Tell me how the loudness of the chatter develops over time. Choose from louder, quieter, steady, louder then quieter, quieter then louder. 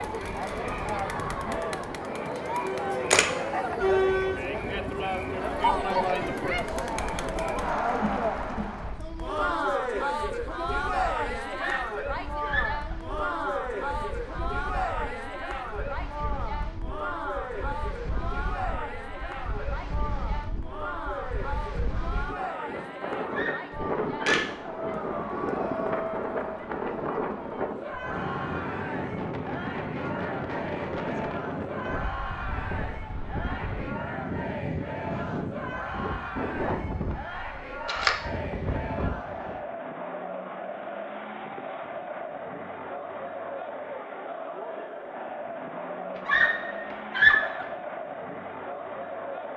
quieter.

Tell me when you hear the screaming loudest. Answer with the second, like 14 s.
47 s.